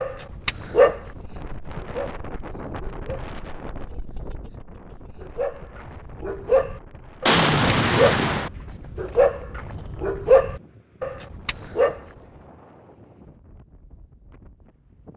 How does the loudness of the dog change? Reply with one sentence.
The volume of the dog goes down, then up.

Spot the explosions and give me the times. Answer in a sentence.
The explosions can be heard from 7.2 to 8.5 s.